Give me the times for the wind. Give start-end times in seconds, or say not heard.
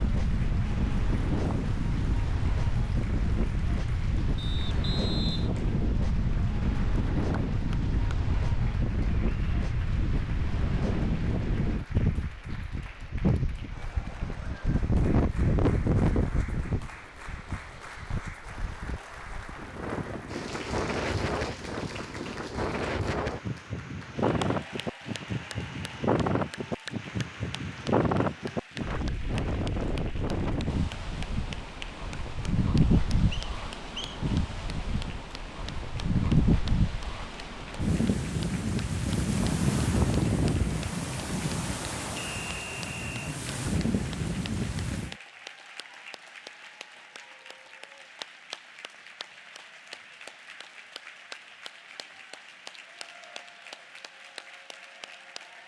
0.0-45.1.